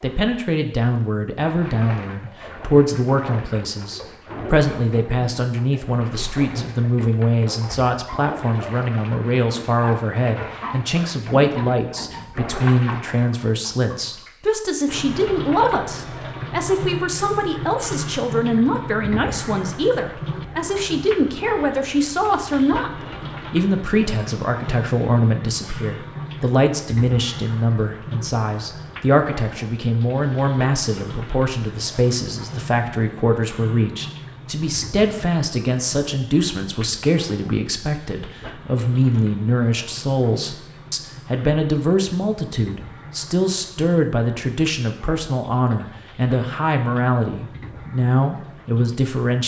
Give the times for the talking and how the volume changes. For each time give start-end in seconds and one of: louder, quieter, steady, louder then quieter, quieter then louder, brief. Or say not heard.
0.0-49.4 steady.